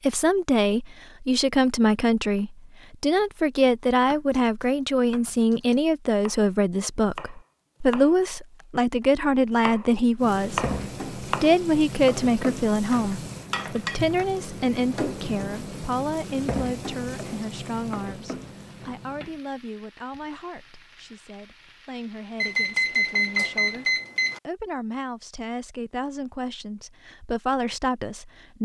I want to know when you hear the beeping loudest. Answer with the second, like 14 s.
23 s.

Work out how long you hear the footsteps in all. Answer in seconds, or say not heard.
not heard.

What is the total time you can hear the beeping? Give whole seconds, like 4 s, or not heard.
2 s.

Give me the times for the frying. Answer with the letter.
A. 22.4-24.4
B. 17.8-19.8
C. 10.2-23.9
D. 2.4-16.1
C.